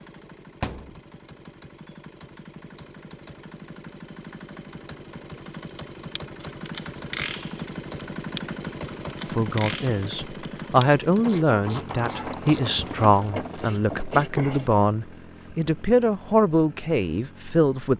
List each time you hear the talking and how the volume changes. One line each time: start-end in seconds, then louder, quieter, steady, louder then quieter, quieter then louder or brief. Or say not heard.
9.3-17.9 steady.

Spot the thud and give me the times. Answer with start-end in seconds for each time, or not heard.
0.6-1.0.